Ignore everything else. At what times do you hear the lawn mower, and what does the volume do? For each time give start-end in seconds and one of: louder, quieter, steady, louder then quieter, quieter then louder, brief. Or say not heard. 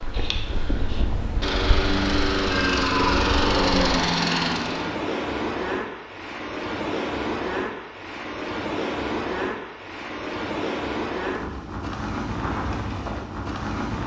0.0-4.9 louder.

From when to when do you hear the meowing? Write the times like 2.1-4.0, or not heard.
2.5-3.2.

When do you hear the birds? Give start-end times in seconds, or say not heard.
not heard.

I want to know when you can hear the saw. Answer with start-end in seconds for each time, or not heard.
not heard.